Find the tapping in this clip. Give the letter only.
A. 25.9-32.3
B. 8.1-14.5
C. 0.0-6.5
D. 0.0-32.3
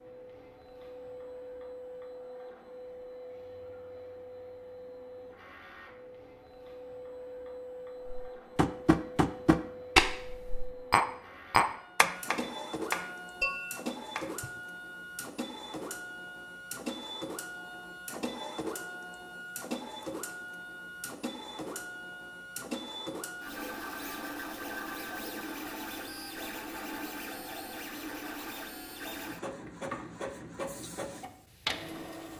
B.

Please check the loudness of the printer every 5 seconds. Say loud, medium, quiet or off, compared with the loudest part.
medium, medium, loud, loud, loud, loud, loud.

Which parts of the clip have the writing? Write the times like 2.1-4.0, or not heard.
not heard.